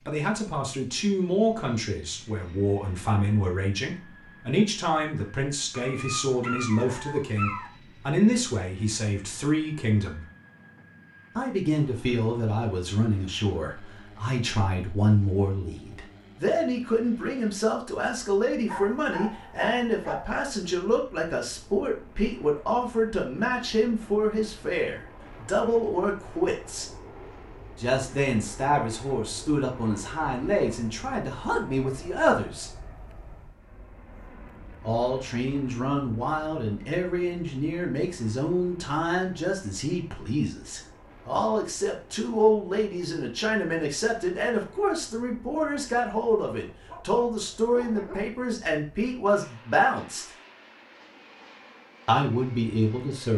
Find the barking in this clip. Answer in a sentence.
You can hear the barking from 5.7 to 7.7 s, from 18.6 to 20.3 s and from 46.6 to 48.4 s.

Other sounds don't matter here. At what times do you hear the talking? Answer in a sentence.
The talking can be heard from 0.1 to 10.2 s, from 11.3 to 26.9 s, from 27.8 to 32.7 s, from 34.8 to 50.3 s and from 52.0 to 53.3 s.